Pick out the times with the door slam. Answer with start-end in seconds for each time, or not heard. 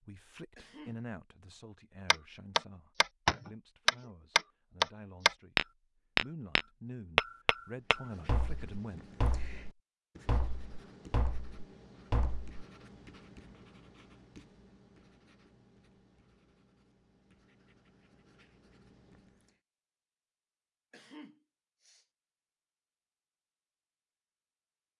not heard.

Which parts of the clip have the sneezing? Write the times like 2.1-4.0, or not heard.
0.6-1.1, 20.9-22.1.